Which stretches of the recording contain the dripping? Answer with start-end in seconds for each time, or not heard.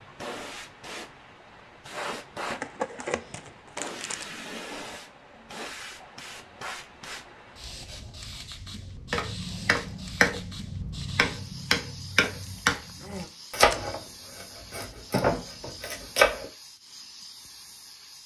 not heard.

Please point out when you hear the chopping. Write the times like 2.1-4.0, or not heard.
9.1-16.5.